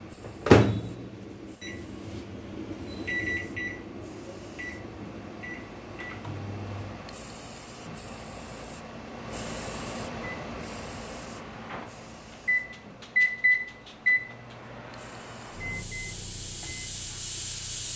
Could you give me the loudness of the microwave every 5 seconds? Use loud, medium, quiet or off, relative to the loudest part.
loud, quiet, loud, quiet.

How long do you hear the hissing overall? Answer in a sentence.
The hissing can be heard for 18 seconds in total.